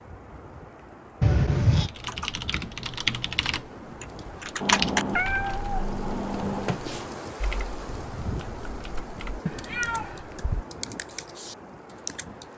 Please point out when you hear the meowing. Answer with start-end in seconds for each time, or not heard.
1.2-1.9, 4.6-6.8, 9.4-10.7.